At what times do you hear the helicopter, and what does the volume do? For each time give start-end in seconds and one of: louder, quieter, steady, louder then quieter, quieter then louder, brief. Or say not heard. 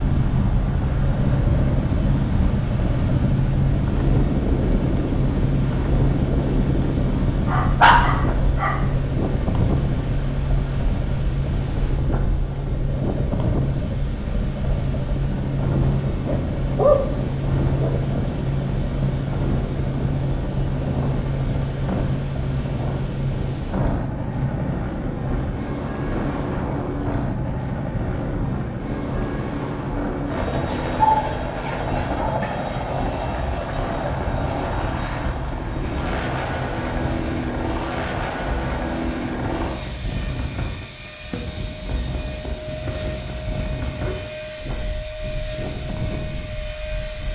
0.0-47.2 steady.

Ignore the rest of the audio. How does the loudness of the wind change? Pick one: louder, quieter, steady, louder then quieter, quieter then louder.
quieter.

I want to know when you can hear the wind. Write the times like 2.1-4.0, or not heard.
0.0-47.2.